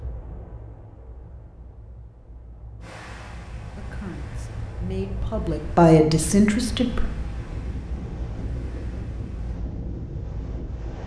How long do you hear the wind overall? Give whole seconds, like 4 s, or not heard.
11 s.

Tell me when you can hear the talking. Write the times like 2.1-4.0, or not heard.
3.8-7.0.